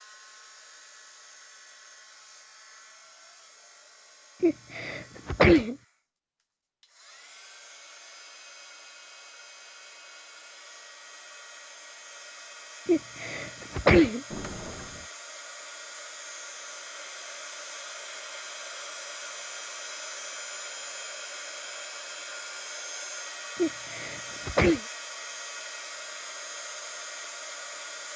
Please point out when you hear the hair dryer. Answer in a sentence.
The hair dryer can be heard from 0.0 to 28.1 s.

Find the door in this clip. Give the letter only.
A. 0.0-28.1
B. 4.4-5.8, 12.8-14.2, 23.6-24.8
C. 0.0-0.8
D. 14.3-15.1
D.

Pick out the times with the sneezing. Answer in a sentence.
You can hear the sneezing from 4.4 to 5.8 s, from 12.8 to 14.2 s and from 23.6 to 24.8 s.